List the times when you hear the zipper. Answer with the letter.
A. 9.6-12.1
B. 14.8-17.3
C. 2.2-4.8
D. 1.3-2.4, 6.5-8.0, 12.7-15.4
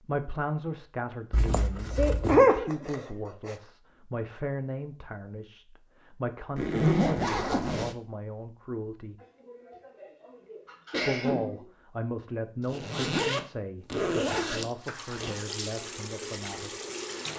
D.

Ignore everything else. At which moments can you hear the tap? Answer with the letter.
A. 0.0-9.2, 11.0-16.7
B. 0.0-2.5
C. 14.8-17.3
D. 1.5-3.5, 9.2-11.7
C.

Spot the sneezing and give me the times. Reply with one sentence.
You can hear the sneezing from 1.5 to 3.5 s and from 9.2 to 11.7 s.